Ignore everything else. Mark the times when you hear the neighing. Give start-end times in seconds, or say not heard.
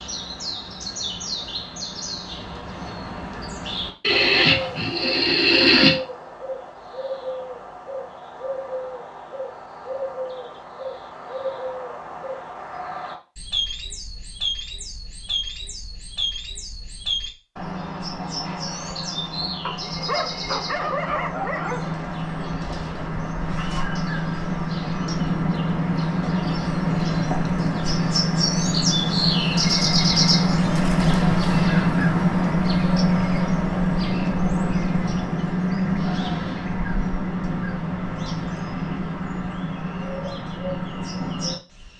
4.0-6.0.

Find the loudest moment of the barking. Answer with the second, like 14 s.
21 s.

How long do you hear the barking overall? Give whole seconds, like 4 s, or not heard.
2 s.